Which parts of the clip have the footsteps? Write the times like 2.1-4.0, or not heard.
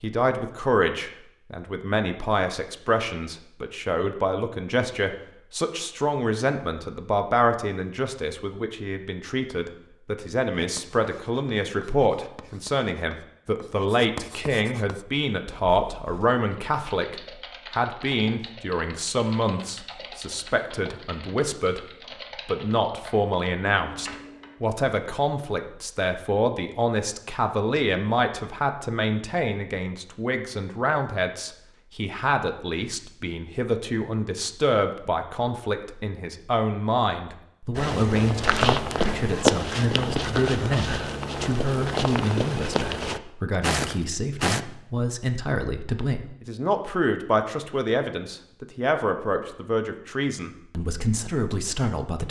37.8-44.6.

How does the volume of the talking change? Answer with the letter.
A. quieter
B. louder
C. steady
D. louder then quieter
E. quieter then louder
C.